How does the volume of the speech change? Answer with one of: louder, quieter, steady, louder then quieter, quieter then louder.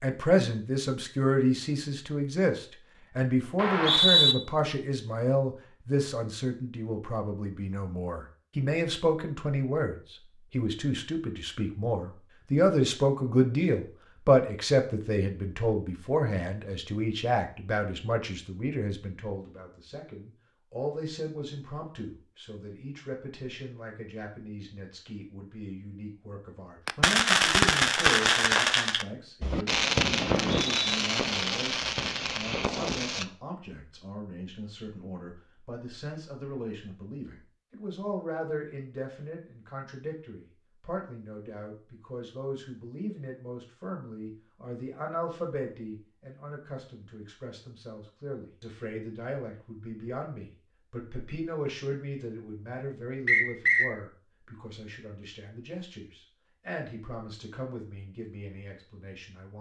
quieter.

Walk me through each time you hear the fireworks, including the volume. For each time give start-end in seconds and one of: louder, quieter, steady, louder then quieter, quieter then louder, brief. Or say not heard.
26.9-33.2 quieter.